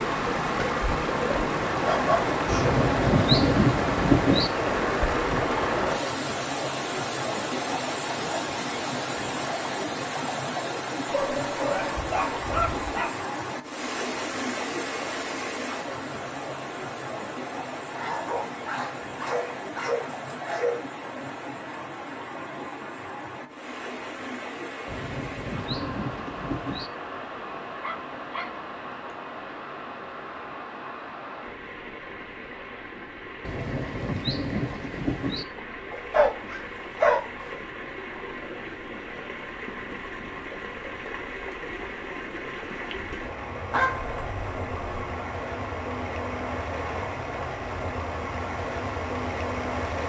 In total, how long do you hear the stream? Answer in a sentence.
You can hear the stream for 50 seconds altogether.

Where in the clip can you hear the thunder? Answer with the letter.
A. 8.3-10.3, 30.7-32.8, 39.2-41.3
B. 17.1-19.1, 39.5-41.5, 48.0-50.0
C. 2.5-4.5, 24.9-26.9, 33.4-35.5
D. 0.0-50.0
C.